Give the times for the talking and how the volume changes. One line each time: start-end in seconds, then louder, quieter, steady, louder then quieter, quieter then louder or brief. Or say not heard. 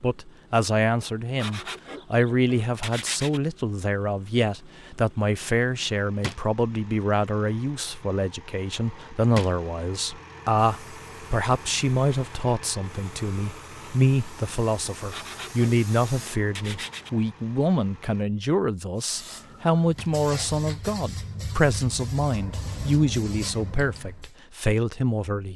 0.0-25.5 steady.